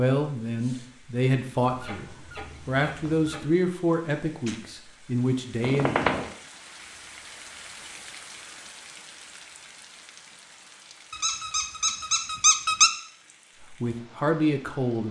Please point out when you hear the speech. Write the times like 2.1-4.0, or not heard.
0.0-6.0, 13.7-15.0.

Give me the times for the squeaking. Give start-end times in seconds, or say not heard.
1.6-3.5, 5.6-6.3, 11.1-12.9.